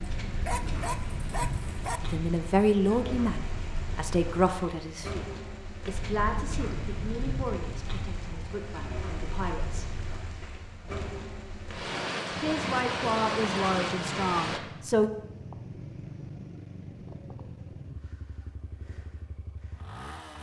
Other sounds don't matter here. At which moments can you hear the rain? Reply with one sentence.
You can hear the rain from 0.0 to 14.6 s.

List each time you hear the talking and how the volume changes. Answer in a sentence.
The talking can be heard from 2.0 to 9.9 s, getting quieter; and briefly from 12.4 to 15.1 s.